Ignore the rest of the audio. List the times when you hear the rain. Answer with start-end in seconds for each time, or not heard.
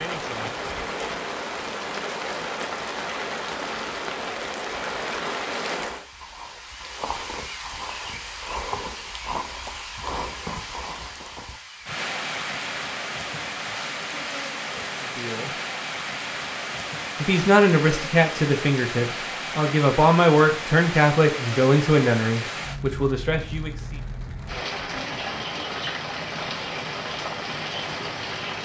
0.0-28.6.